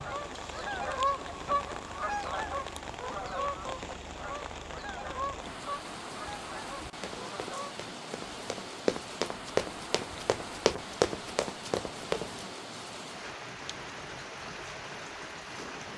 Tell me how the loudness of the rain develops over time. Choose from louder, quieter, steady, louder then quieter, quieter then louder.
steady.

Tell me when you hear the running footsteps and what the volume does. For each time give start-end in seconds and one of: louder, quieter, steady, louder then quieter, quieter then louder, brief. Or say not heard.
7.0-12.4 louder then quieter.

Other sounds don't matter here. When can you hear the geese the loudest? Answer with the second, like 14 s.
1 s.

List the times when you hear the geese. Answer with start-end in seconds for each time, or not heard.
0.0-7.8.